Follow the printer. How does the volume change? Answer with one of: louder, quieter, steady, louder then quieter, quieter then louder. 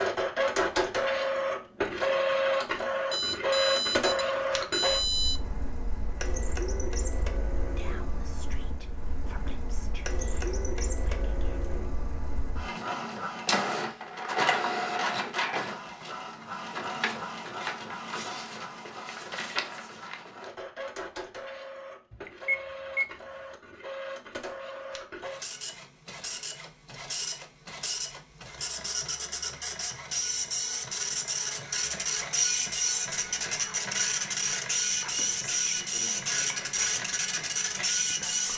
quieter then louder.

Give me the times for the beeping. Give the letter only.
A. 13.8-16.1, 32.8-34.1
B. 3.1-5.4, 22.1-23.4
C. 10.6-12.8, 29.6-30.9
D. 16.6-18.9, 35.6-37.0
B.